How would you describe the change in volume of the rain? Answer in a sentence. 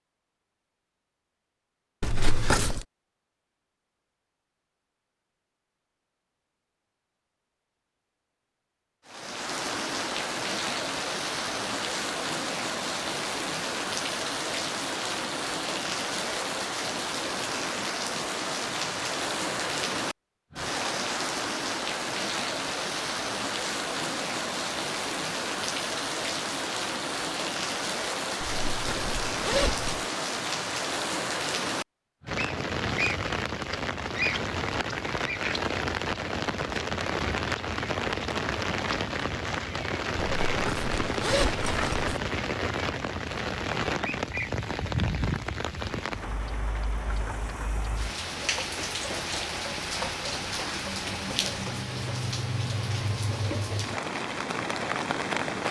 The loudness of the rain stays about the same.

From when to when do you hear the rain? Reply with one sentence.
You can hear the rain from 9.1 to 55.6 s.